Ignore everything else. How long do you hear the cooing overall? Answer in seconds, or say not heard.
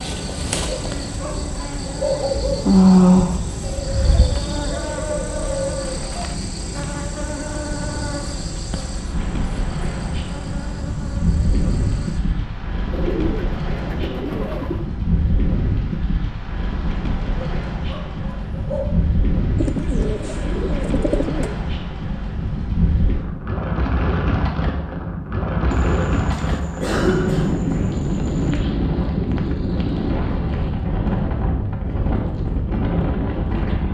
10 s.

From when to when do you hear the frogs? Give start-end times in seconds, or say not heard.
not heard.